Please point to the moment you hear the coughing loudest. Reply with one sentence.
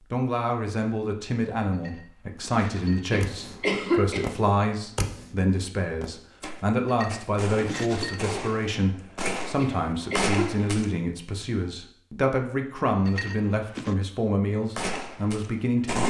The volume of the coughing peaks at 4 seconds.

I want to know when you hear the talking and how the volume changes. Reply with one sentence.
You can hear the talking from 0.1 to 16.0 s, at a steady volume.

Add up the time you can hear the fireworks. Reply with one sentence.
You can hear the fireworks for 9 seconds altogether.